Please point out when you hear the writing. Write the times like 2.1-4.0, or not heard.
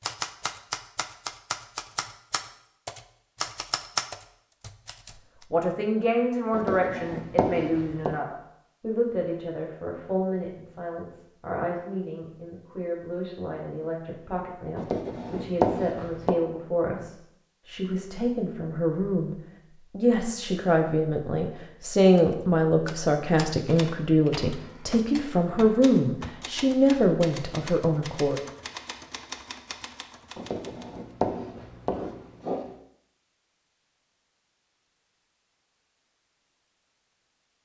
6.5-8.2, 14.8-16.4, 30.4-32.8.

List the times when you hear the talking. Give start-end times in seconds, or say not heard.
5.5-28.4.